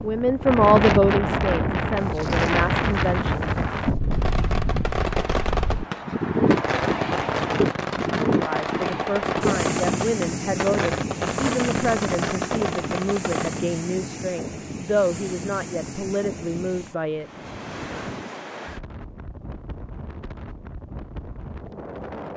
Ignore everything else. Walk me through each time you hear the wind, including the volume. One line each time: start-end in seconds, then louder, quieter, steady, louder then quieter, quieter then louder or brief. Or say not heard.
0.0-22.3 quieter.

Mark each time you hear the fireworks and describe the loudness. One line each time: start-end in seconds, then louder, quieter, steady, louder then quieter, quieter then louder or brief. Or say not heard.
4.0-13.7 steady.